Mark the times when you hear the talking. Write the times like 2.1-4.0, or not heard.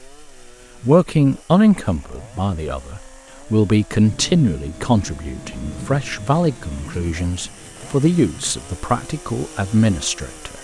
0.8-10.5.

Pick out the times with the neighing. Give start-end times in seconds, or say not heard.
not heard.